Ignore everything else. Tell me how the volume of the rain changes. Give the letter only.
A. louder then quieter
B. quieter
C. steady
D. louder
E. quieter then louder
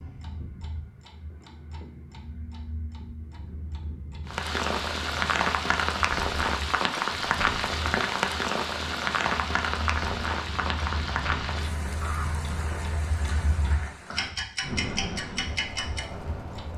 B.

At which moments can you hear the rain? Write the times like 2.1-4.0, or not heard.
4.2-16.7.